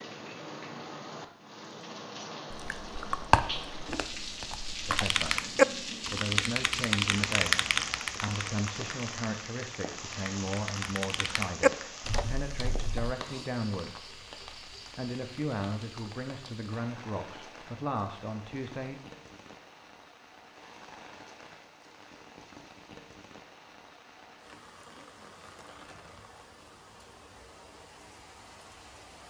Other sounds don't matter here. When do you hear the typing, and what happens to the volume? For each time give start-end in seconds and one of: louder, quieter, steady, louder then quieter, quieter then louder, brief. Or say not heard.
4.9-13.2 quieter then louder.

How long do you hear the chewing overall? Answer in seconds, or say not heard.
3 s.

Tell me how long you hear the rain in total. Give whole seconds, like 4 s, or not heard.
29 s.